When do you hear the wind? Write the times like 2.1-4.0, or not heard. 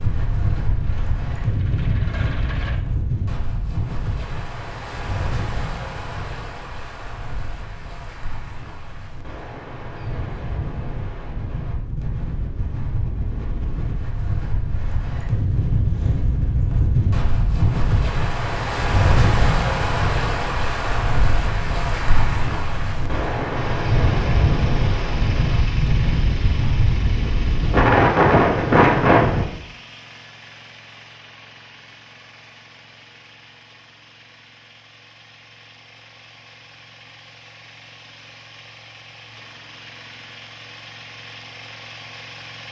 0.0-29.4.